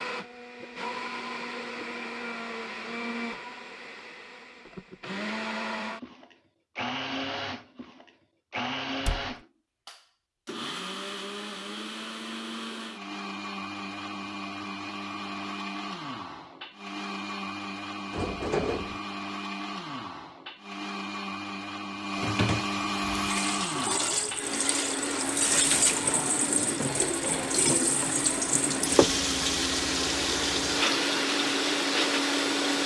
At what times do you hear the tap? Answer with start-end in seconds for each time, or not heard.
22.9-32.8.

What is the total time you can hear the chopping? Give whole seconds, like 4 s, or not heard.
not heard.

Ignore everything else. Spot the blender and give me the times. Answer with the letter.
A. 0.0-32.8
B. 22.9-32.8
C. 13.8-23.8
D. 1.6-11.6
A.